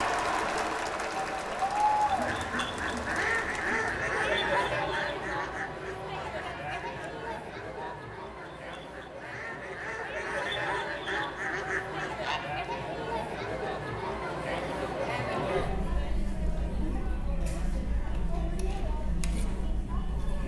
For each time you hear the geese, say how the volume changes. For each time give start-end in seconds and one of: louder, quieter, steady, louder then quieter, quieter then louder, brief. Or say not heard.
2.0-12.4 quieter then louder.